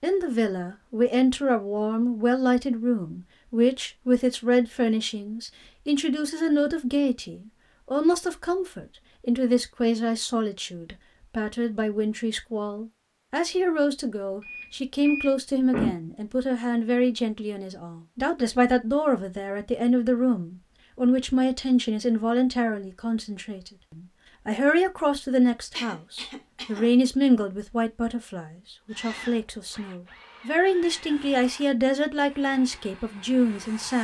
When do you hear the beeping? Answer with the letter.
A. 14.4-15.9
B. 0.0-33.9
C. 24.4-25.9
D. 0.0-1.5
A.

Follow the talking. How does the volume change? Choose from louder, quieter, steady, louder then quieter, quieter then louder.
steady.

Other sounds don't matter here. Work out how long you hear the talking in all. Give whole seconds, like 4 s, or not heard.
34 s.